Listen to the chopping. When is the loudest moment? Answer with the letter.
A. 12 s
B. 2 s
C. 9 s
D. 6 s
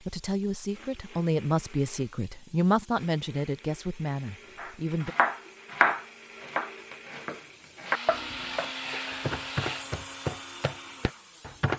D.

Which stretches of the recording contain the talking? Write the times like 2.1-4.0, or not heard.
0.0-5.2.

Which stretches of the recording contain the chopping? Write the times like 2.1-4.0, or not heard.
4.5-11.7.